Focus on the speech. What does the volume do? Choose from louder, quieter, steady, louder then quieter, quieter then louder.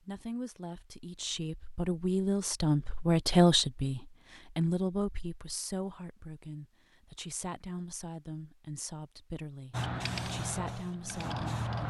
louder then quieter.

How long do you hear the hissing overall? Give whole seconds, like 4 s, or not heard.
2 s.